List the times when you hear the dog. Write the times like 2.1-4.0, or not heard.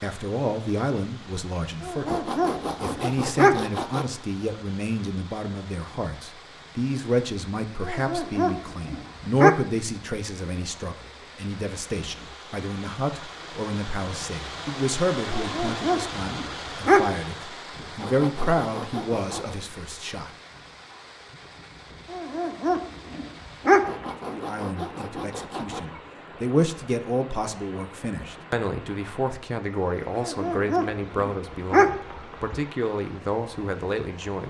1.8-3.6, 7.8-9.6, 15.3-17.2, 22.1-24.1, 30.1-32.6.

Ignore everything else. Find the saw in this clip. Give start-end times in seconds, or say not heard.
2.0-4.0, 17.9-19.6, 23.8-25.8.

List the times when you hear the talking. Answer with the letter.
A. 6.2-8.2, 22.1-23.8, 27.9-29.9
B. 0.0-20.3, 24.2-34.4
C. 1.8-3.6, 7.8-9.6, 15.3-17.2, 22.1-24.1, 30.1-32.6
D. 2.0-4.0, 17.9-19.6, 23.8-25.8
B.